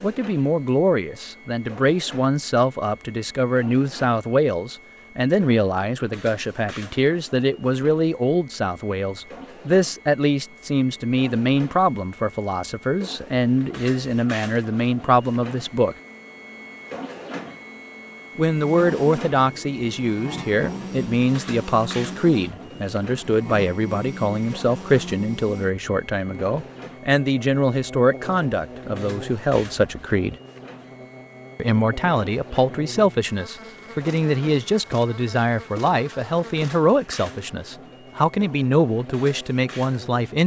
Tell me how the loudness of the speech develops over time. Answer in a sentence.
The loudness of the speech stays about the same.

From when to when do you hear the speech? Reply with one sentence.
You can hear the speech from 0.0 to 15.9 s, from 18.4 to 30.4 s and from 31.6 to 40.4 s.